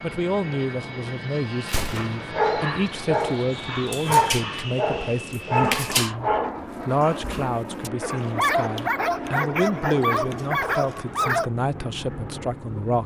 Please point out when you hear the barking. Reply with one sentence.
You can hear the barking from 1.9 to 11.5 s.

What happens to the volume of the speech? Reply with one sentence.
The volume of the speech stays about the same.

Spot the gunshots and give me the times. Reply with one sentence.
You can hear the gunshots from 1.6 to 2.3 s.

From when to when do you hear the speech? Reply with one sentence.
You can hear the speech from 0.0 to 13.0 s.